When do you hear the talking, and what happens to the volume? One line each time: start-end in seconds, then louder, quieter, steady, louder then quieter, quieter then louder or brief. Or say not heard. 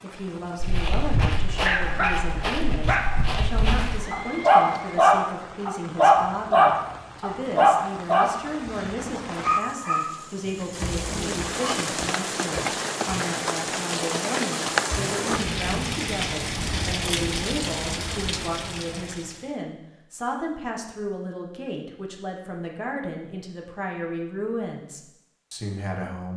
0.0-26.3 steady.